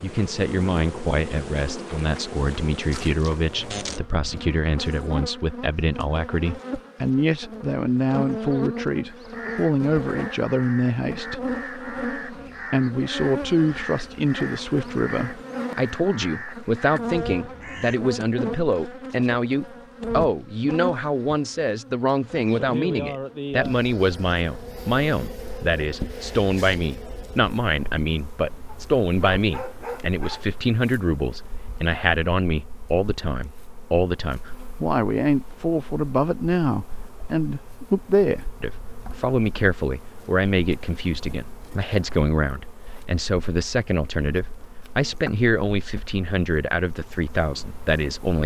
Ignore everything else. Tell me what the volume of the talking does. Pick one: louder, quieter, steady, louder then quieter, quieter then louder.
steady.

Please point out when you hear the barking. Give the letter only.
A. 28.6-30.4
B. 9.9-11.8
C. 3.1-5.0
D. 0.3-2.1
A.